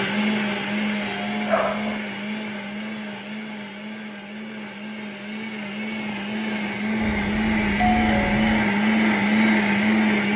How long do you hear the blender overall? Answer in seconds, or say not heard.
10 s.